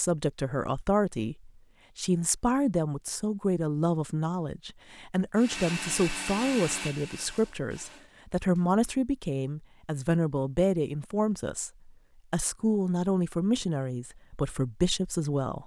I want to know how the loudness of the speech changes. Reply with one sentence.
The loudness of the speech stays about the same.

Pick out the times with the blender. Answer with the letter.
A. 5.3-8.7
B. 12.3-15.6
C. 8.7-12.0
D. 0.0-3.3
A.